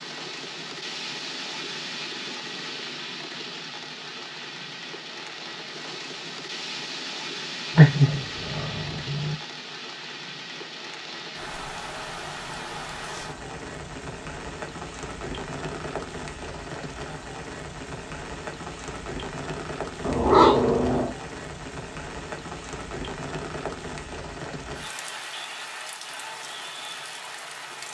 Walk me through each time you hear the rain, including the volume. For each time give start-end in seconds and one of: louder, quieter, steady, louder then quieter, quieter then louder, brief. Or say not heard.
0.0-27.8 steady.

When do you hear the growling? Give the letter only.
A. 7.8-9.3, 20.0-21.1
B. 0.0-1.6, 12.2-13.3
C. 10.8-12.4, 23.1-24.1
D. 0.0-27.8
A.